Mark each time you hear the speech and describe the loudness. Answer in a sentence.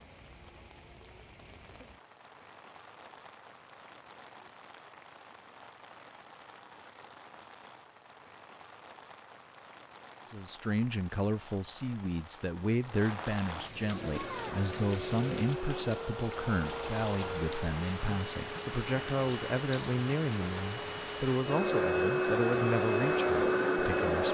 The speech can be heard from 10.3 to 24.3 s, at a steady volume.